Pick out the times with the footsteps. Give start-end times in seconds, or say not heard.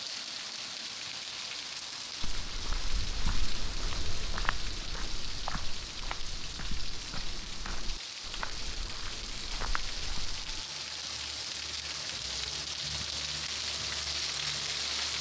2.2-10.7.